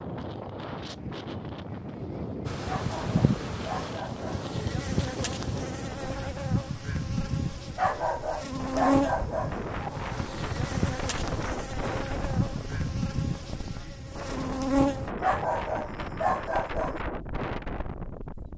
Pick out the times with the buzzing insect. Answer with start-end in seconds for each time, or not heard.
2.5-15.1.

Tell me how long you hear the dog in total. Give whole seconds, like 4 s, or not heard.
5 s.